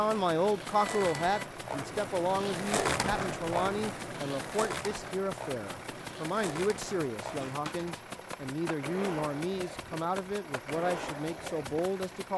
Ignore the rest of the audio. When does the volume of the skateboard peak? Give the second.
3 s.